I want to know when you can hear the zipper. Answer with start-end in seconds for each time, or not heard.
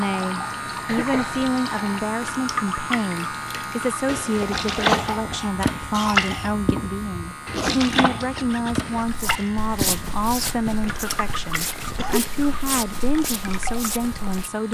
4.0-5.2, 7.5-9.2.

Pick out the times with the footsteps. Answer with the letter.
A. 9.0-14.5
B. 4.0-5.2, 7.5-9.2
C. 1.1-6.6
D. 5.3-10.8
A.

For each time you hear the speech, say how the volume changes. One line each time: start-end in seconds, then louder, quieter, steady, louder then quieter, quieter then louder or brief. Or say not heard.
0.0-14.6 steady.